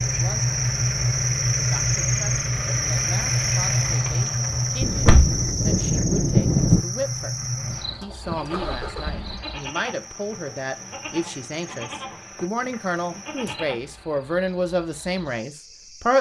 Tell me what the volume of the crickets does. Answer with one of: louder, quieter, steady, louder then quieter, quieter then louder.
quieter.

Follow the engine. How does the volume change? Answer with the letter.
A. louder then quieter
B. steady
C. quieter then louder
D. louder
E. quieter
E.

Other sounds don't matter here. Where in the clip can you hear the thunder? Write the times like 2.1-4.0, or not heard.
4.8-6.8.